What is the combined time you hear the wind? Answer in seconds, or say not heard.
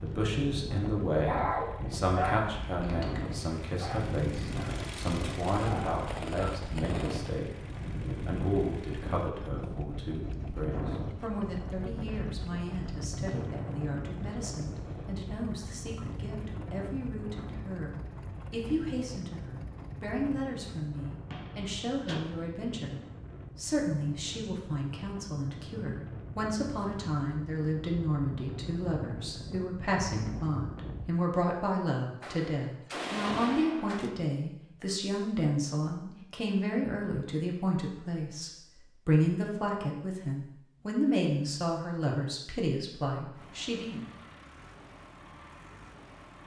31 s.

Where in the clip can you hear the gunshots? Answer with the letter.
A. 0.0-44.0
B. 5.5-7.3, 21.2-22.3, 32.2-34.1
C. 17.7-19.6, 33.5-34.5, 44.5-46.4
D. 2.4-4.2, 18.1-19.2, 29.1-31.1
B.